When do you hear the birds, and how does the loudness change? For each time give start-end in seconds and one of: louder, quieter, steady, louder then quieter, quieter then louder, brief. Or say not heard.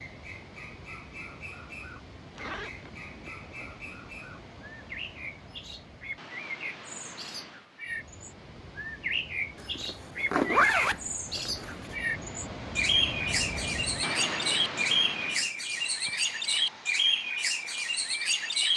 0.0-18.7 louder.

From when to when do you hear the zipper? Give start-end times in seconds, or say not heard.
2.4-3.8, 9.6-11.9.